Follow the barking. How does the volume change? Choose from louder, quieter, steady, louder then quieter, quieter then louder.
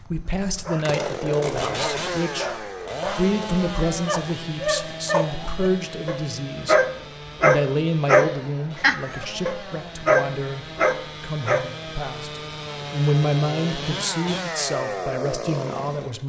louder.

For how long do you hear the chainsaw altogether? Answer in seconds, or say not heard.
16 s.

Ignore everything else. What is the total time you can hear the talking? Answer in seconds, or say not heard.
16 s.